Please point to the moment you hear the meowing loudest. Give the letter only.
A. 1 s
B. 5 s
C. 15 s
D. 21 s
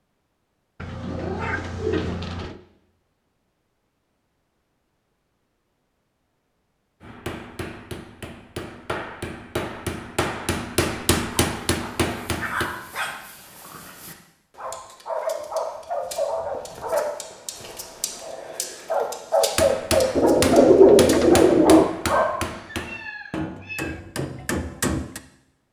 A.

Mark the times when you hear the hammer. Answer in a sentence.
The hammer can be heard from 7.0 to 12.7 s and from 19.6 to 25.2 s.